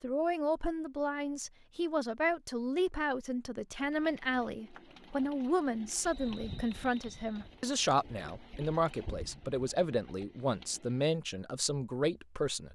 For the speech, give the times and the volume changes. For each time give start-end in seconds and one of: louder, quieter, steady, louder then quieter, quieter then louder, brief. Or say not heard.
0.0-12.6 steady.